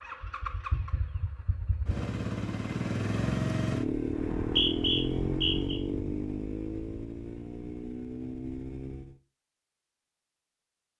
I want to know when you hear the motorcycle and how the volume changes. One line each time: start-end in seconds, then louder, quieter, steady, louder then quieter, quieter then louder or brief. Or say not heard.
0.0-9.2 louder then quieter.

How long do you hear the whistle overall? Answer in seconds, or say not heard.
2 s.